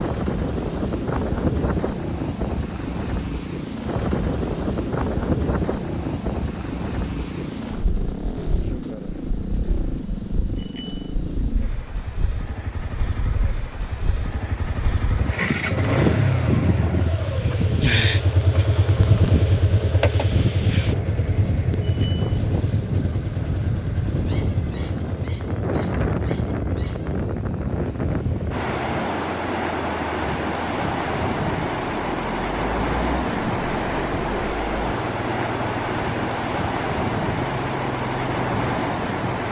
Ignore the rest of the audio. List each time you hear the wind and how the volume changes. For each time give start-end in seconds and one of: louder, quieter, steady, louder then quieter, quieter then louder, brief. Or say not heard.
0.0-39.4 quieter then louder.